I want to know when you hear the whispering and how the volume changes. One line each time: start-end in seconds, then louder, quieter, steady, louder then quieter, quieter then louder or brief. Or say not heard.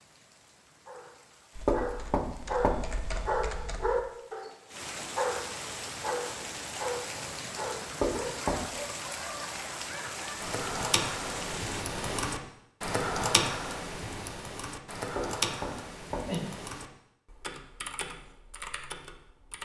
not heard.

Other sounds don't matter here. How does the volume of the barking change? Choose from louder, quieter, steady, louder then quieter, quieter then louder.
quieter.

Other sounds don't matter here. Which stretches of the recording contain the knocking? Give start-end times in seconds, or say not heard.
1.6-2.8, 8.0-8.6, 15.2-16.4.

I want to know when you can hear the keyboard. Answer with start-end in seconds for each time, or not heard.
1.6-4.0, 10.4-19.5.